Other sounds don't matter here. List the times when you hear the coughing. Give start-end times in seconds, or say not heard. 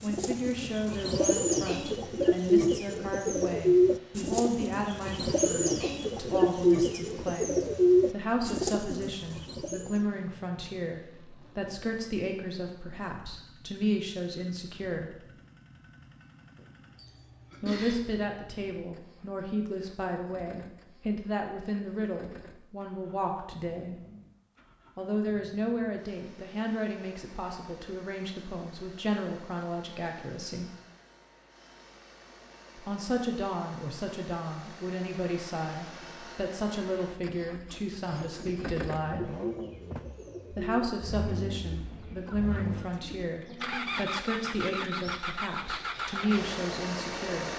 16.9-18.0.